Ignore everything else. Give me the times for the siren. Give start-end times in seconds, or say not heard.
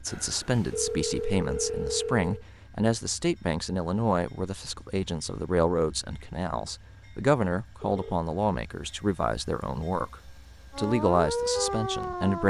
10.7-12.4.